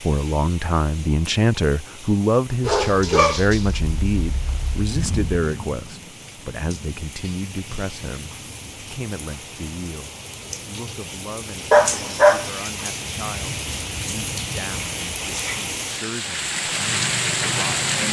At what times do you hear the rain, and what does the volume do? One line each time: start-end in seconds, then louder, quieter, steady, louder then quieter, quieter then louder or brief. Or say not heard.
0.0-18.0 louder.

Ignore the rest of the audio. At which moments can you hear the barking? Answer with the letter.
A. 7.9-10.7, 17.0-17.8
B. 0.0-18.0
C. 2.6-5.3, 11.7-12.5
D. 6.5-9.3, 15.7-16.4
C.